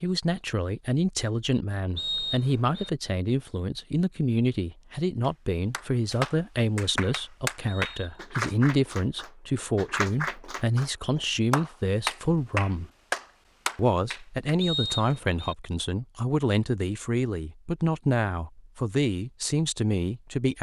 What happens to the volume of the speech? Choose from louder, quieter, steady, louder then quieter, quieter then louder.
steady.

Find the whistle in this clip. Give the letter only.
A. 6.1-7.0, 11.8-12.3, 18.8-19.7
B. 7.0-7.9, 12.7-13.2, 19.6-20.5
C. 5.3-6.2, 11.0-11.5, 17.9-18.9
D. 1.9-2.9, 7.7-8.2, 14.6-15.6
D.